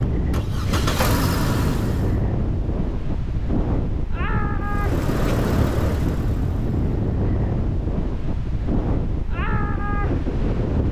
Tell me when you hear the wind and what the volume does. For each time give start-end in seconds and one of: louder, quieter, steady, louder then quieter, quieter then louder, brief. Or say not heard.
0.0-10.8 steady.